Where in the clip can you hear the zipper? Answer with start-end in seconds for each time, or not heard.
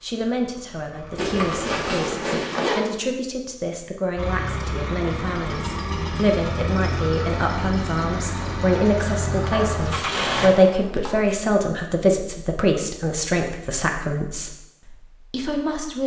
1.1-2.8, 9.3-11.2.